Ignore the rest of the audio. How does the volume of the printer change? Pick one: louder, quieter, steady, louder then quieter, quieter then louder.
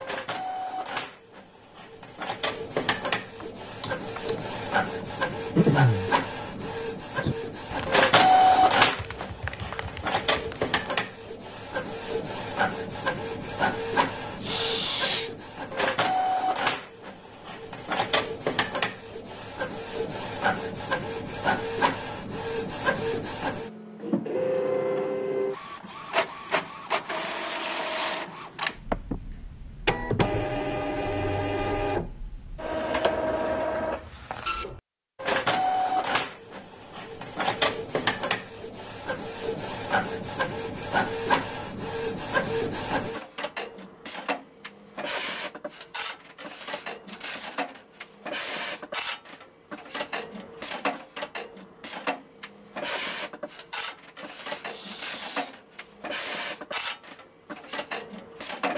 quieter.